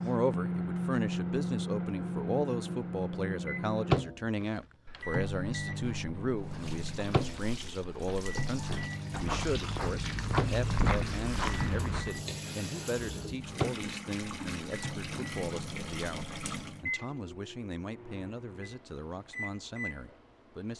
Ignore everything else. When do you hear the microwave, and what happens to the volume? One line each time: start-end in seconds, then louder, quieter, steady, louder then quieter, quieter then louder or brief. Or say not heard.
0.0-20.7 quieter.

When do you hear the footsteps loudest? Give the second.
11 s.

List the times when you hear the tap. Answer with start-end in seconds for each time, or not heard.
6.5-16.8.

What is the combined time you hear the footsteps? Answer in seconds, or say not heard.
8 s.